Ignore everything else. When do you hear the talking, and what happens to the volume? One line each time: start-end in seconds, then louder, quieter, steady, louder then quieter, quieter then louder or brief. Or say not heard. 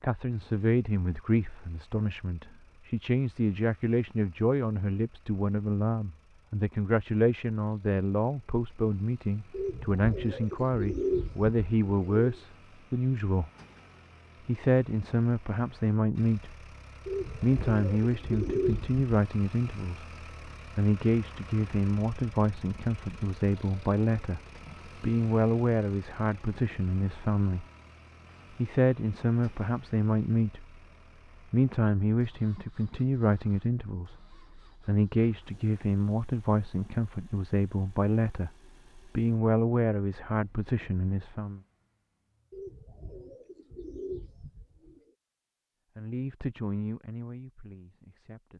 0.0-13.5 steady
14.4-16.6 brief
17.4-27.6 steady
28.6-30.8 brief
31.5-41.6 steady
46.0-48.5 brief.